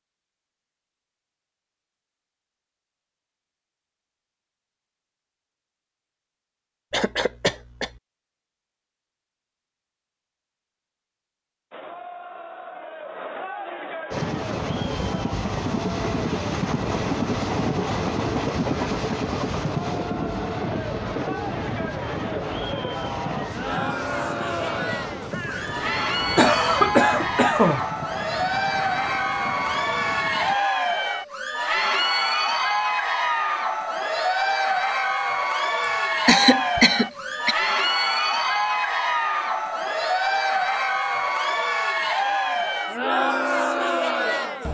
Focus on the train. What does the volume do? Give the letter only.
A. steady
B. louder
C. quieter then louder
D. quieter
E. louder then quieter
D.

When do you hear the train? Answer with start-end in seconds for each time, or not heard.
14.1-30.6.